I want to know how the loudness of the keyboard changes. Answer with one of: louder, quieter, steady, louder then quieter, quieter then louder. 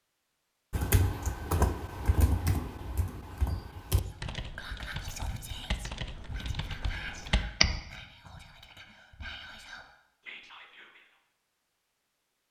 quieter.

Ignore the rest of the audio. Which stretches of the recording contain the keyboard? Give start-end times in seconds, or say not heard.
0.7-7.7.